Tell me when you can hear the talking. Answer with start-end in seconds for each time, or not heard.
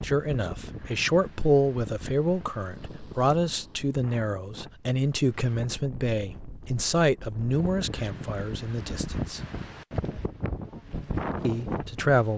0.0-9.4, 11.4-12.3.